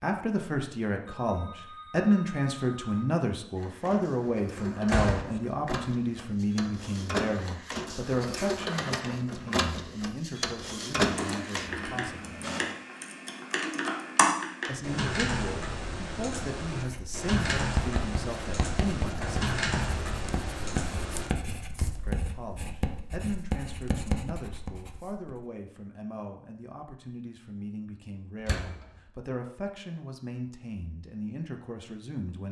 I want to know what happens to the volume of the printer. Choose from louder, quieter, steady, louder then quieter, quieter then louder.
louder.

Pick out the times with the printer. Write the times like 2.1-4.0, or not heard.
3.5-12.8.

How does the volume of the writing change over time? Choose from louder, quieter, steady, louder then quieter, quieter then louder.
steady.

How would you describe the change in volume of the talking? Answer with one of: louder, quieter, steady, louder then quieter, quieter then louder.
quieter.